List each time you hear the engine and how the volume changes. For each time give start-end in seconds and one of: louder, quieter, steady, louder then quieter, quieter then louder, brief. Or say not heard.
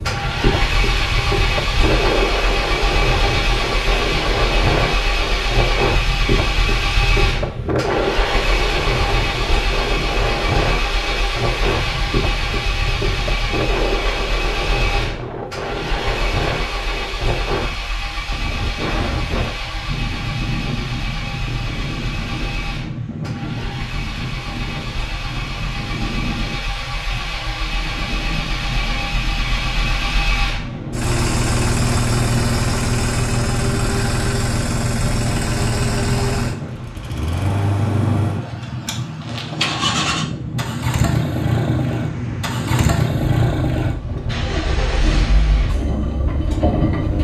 0.0-47.1 quieter then louder.